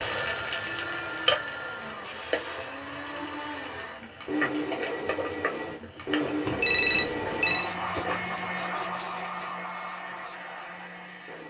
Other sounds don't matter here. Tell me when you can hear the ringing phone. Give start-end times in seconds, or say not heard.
0.2-1.9, 6.5-7.7.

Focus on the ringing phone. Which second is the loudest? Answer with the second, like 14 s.
7 s.